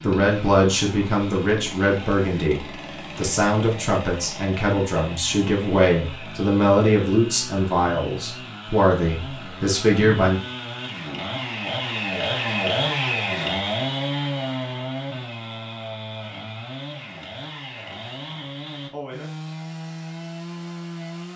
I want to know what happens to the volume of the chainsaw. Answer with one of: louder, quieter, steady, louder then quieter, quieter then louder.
louder then quieter.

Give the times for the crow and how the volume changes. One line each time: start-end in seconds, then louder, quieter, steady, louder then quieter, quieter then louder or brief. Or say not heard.
not heard.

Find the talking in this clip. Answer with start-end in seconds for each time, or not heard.
0.0-10.4.